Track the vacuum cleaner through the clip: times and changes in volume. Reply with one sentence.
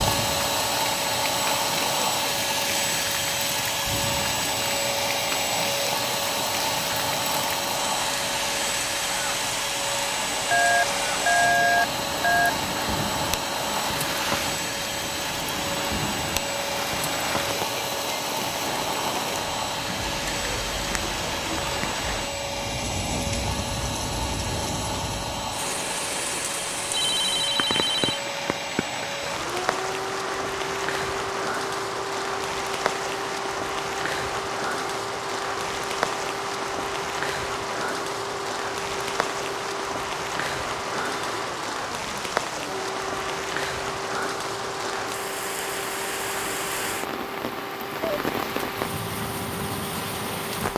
The vacuum cleaner can be heard from 0.0 to 50.7 s, getting quieter.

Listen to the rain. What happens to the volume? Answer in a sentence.
The loudness of the rain stays about the same.